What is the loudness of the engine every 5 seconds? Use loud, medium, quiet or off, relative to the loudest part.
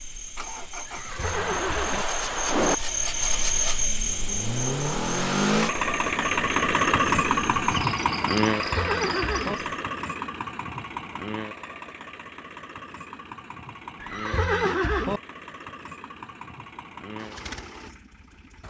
medium, loud, quiet, quiet.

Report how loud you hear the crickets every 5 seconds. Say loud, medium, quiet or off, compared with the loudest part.
loud, medium, off, off.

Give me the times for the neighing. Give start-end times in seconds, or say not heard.
0.8-2.0, 8.6-9.6, 14.0-15.2.